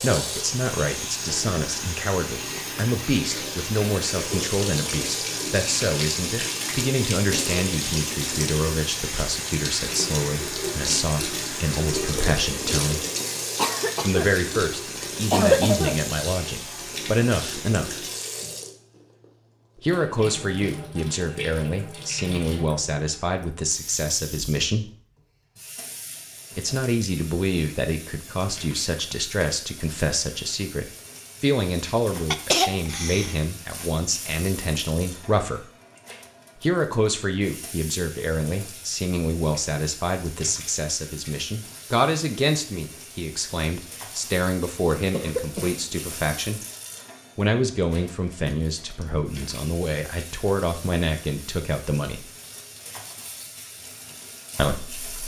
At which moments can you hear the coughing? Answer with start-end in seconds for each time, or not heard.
13.6-14.3, 15.3-16.0, 32.3-33.4, 45.1-45.9.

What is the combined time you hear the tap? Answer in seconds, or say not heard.
55 s.